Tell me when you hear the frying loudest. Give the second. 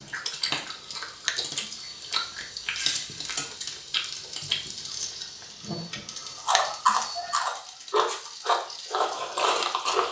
3 s.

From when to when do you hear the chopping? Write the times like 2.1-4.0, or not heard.
not heard.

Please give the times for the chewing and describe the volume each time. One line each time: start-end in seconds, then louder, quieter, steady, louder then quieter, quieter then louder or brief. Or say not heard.
0.0-10.0 louder.